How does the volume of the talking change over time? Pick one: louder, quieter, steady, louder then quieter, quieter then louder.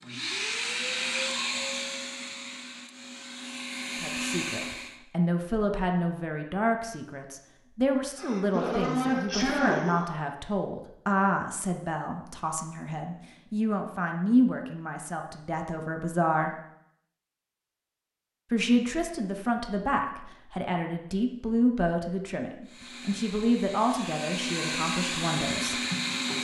steady.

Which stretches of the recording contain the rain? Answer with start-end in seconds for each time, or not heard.
not heard.